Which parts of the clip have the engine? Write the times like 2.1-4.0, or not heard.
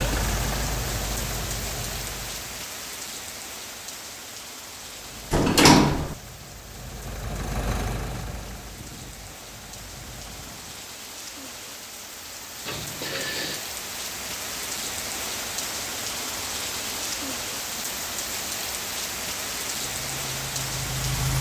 0.0-2.6, 4.8-11.0, 19.7-21.3.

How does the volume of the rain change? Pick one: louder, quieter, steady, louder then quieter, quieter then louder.
quieter then louder.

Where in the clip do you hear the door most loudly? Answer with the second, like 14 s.
6 s.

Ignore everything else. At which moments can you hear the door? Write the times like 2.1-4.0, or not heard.
5.3-6.2, 12.7-13.7.